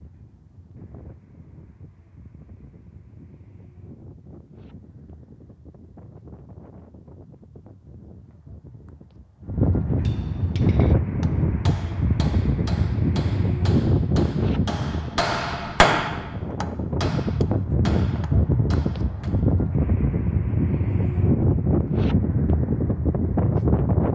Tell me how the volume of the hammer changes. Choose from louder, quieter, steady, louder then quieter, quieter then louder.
louder then quieter.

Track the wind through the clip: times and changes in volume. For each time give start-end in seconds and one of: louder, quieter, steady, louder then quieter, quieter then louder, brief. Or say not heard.
0.0-24.0 louder.